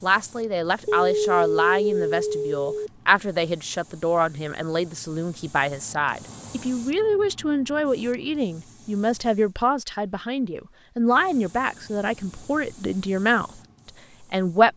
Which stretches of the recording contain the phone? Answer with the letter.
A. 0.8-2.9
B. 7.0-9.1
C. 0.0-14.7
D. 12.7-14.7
A.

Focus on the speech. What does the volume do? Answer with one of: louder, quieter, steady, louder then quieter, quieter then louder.
steady.